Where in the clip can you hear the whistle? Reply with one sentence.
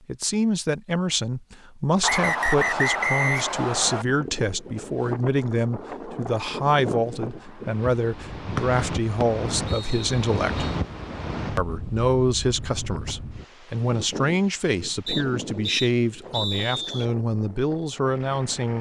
You can hear the whistle from 2.0 to 4.0 s, from 9.2 to 10.8 s and from 15.1 to 17.1 s.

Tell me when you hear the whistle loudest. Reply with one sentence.
The loudest moment of the whistle is at 3 seconds.